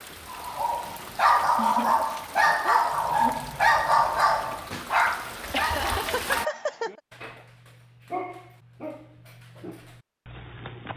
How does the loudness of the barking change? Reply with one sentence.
The volume of the barking goes down.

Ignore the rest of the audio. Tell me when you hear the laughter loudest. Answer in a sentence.
The volume of the laughter peaks at 6 seconds.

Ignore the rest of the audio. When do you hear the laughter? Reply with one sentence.
The laughter can be heard from 1.6 to 3.5 s and from 5.5 to 7.0 s.